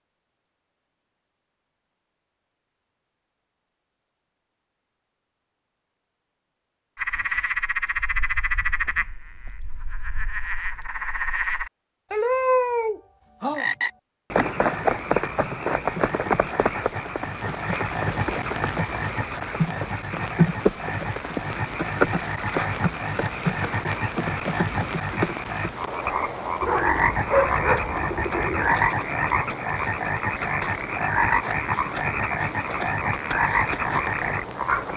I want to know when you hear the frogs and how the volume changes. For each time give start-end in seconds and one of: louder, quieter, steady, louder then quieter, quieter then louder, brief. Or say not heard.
7.0-34.9 steady.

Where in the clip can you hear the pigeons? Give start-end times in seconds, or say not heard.
26.6-28.8.